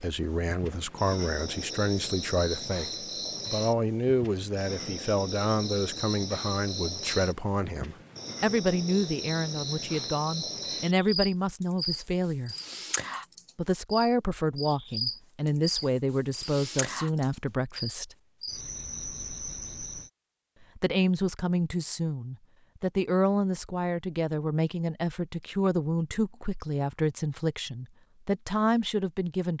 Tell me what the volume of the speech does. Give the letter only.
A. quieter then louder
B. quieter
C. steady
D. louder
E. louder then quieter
C.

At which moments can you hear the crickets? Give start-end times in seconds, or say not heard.
0.0-20.1.